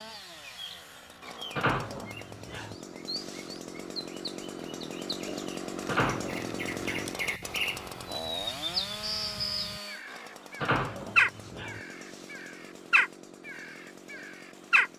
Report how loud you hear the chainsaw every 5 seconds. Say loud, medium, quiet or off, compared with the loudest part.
medium, loud, medium.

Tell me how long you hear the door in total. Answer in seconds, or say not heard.
4 s.